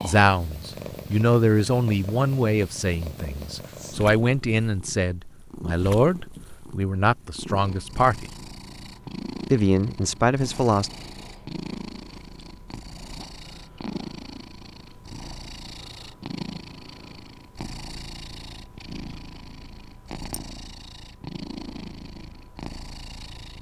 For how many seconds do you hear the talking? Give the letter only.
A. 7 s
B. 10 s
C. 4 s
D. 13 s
B.